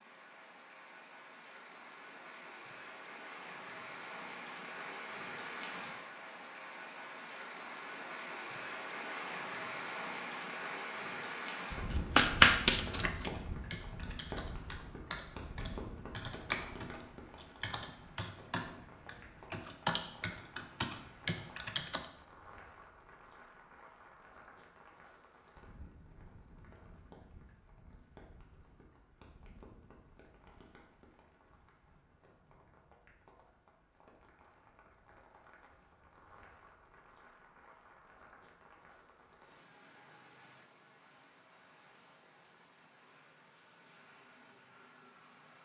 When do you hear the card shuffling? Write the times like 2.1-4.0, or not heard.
11.9-13.3.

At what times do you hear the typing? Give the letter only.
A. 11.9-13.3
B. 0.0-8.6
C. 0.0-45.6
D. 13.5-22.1
D.